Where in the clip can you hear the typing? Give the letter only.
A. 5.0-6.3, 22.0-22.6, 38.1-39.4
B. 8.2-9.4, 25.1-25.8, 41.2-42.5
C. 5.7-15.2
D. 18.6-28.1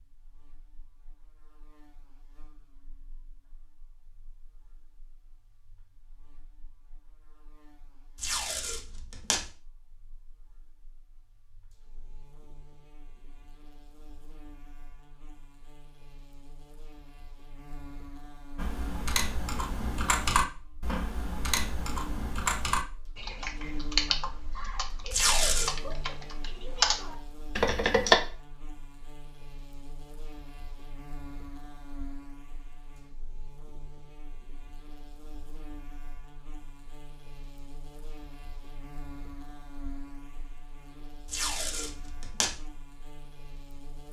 D.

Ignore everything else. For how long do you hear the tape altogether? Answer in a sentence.
You can hear the tape for 3 seconds altogether.